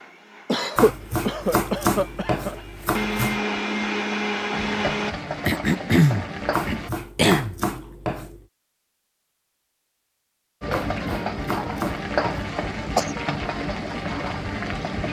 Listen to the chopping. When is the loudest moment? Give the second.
2 s.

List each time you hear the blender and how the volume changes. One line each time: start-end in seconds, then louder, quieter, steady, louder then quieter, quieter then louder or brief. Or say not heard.
0.0-5.2 louder.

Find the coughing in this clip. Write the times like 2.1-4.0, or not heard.
0.5-2.5, 5.5-7.5, 12.7-13.1.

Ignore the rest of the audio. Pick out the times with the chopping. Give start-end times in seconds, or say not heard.
0.8-3.4, 6.5-8.4, 10.7-12.5.